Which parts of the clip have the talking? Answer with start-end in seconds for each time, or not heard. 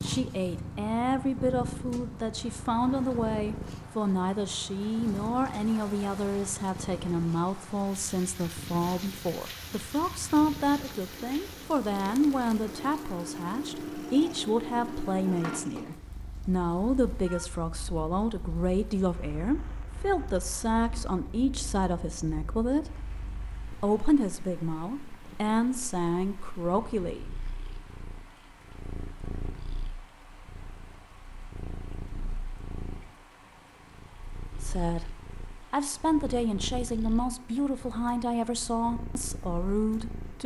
0.0-27.3, 34.6-40.4.